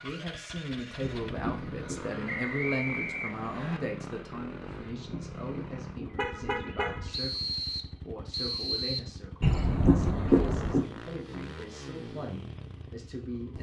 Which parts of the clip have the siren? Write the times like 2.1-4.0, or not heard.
not heard.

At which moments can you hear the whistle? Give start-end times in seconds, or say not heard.
2.2-3.8, 7.1-9.1.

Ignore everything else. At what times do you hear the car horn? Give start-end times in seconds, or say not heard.
1.0-2.0, 4.7-7.2, 9.4-10.8.